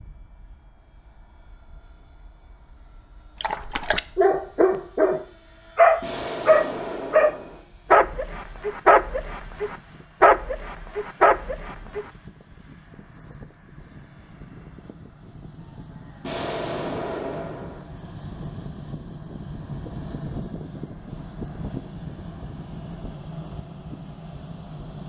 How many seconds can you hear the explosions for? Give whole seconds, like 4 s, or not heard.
3 s.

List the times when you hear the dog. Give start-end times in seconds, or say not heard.
3.4-12.1.